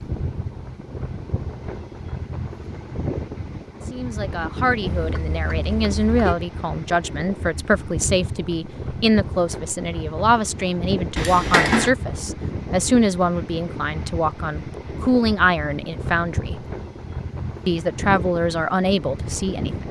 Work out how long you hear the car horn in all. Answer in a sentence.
The car horn can be heard for 2 seconds in total.